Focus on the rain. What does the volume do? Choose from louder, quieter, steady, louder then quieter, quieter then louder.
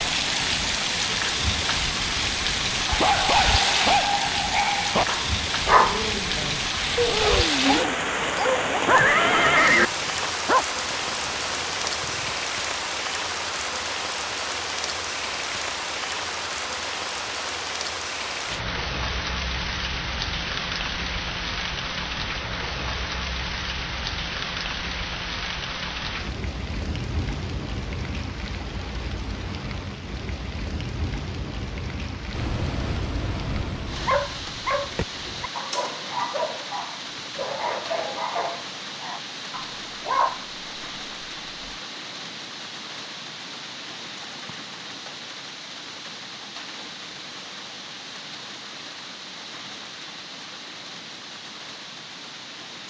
quieter.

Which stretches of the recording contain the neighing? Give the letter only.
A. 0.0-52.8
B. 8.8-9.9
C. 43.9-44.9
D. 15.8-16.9
B.